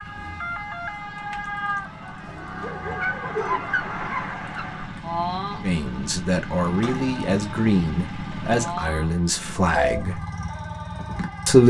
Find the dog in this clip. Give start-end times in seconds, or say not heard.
2.6-4.7.